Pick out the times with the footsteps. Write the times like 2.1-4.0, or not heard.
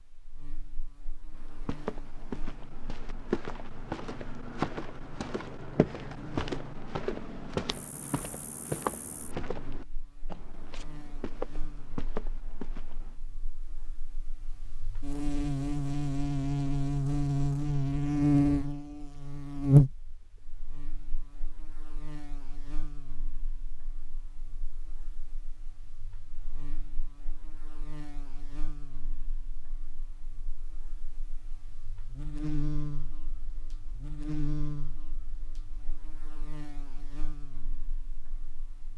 1.3-13.2.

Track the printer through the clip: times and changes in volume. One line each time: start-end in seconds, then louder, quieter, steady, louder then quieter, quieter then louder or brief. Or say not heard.
not heard.